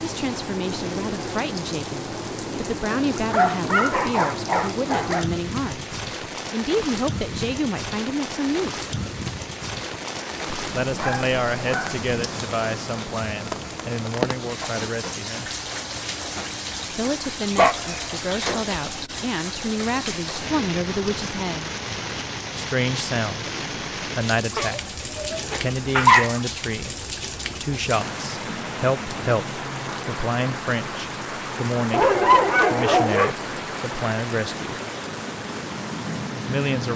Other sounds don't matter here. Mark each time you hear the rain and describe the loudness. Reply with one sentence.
You can hear the rain from 0.0 to 36.9 s, at a steady volume.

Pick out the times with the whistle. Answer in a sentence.
The whistle can't be heard in this clip.